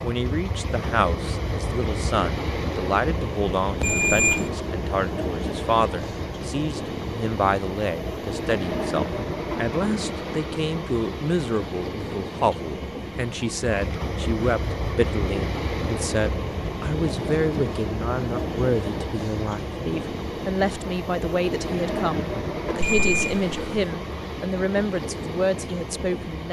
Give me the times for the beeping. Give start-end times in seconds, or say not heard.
3.8-4.5, 22.8-23.9.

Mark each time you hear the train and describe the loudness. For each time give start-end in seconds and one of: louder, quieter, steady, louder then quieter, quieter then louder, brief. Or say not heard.
0.0-26.4 steady.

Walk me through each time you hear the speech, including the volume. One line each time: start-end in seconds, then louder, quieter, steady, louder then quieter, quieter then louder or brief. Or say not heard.
0.0-26.4 steady.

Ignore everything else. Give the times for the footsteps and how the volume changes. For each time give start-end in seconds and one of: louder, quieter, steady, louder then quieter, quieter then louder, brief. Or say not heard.
not heard.